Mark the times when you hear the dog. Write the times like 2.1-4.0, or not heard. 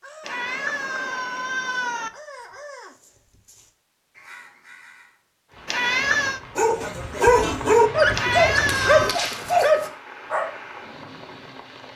6.5-11.7.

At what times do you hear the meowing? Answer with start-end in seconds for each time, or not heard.
0.2-2.1, 5.7-6.4, 8.2-9.2.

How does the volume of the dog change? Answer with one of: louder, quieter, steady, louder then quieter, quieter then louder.
quieter.